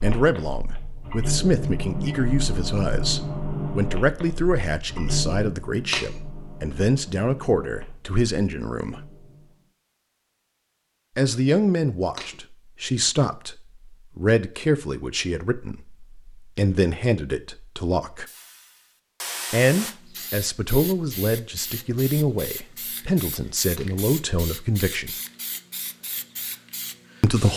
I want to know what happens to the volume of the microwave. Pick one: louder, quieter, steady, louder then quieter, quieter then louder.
quieter.